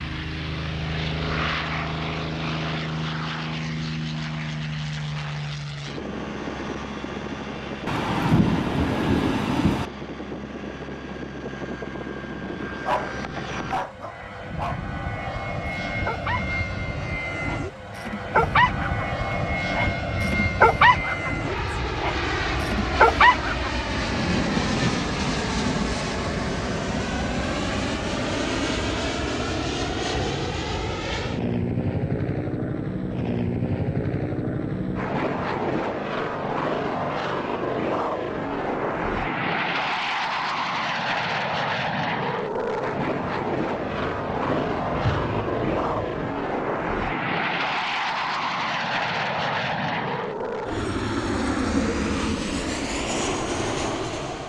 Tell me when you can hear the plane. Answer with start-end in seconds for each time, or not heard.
0.0-54.4.